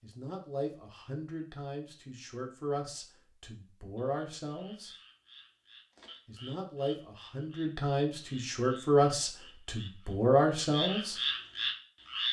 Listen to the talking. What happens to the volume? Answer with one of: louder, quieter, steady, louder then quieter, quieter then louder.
louder.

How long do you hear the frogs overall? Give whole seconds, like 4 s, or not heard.
8 s.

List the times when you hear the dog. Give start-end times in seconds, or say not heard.
not heard.